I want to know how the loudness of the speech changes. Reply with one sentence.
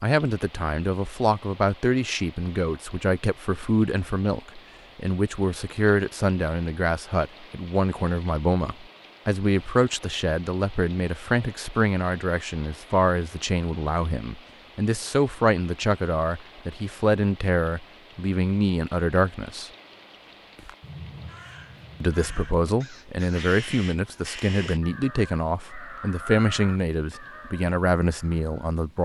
The loudness of the speech stays about the same.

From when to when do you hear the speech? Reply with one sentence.
You can hear the speech from 0.0 to 19.7 s and from 22.0 to 28.9 s.